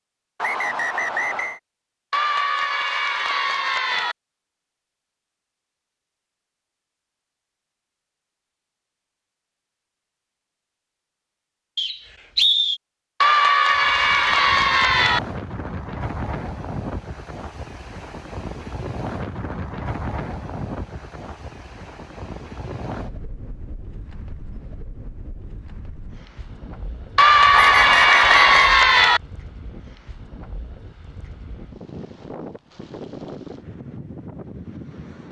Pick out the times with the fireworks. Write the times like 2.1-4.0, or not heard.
not heard.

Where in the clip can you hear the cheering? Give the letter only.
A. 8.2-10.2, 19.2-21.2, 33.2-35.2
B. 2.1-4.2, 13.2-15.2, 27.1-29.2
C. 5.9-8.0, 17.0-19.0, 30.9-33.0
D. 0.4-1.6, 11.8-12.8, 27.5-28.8
B.